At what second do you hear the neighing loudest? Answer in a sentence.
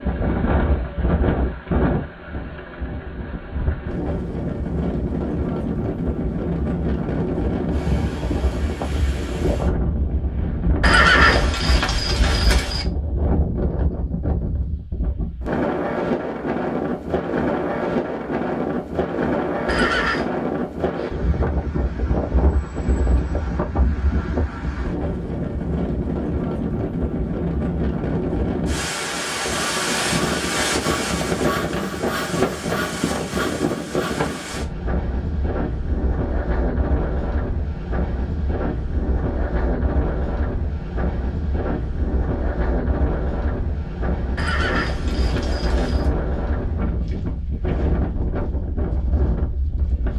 The loudest moment of the neighing is at 11 seconds.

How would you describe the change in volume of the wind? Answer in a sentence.
The volume of the wind stays about the same.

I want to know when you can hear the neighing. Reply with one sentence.
The neighing can be heard from 10.8 to 12.8 s, from 19.6 to 20.2 s and from 44.4 to 46.1 s.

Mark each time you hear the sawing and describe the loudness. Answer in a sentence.
The sawing can be heard from 29.4 to 34.6 s, at a steady volume.